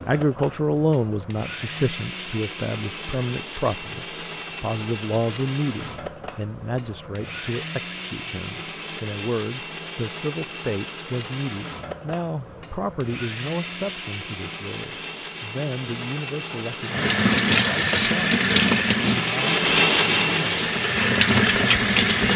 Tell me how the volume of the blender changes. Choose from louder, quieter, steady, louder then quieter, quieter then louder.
louder.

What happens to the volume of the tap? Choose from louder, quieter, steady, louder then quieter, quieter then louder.
quieter then louder.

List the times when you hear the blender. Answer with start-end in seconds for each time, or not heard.
0.0-22.3.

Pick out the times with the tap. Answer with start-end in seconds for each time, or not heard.
16.8-22.3.